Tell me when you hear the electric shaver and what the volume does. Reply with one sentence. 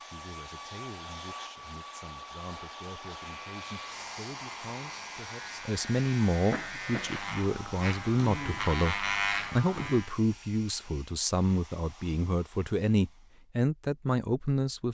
The electric shaver can be heard from 3.2 to 10.2 s, getting louder.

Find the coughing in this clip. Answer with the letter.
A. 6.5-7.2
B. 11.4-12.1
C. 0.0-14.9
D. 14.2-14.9
A.